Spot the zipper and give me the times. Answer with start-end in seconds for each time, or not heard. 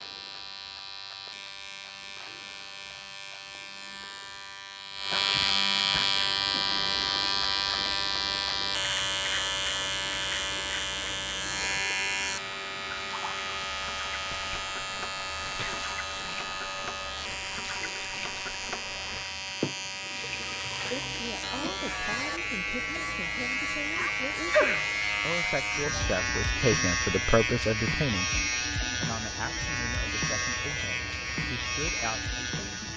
not heard.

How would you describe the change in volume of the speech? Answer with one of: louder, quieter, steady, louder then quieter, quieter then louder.
louder then quieter.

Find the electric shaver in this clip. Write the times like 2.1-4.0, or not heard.
0.0-32.9.